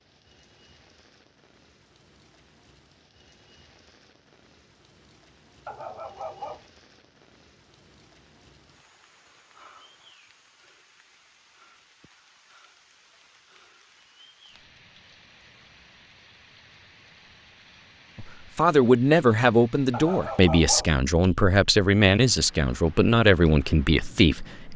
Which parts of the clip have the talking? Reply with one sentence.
You can hear the talking from 18.1 to 24.7 s.